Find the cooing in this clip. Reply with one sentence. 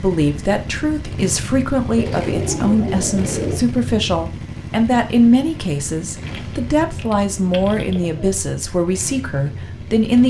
You can hear the cooing from 1.9 to 3.6 s and from 6.2 to 8.2 s.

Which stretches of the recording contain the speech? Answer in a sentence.
You can hear the speech from 0.0 to 10.2 s.